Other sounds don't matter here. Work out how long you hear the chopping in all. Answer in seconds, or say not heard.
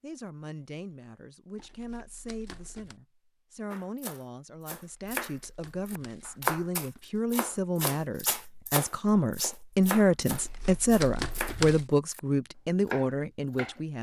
10 s.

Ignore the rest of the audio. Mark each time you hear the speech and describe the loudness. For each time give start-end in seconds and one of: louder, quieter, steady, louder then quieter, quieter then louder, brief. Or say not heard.
0.0-13.9 louder.